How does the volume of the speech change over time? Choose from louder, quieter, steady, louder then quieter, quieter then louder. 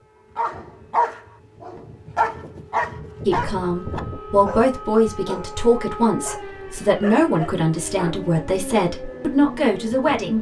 steady.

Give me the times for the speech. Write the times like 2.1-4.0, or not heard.
3.2-10.3.